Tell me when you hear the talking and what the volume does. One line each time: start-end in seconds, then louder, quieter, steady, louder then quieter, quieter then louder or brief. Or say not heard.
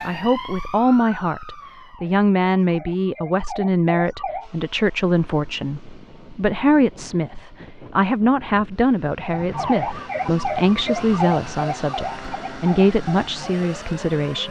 0.1-14.4 steady.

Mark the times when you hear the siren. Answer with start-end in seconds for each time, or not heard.
0.0-4.5, 9.3-14.4.